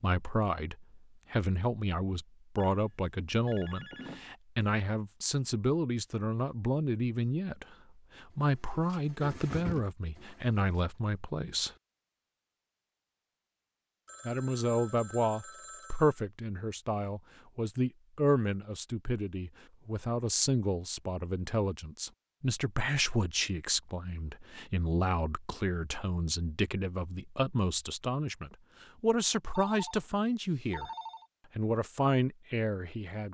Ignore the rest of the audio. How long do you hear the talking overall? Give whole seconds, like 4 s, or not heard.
30 s.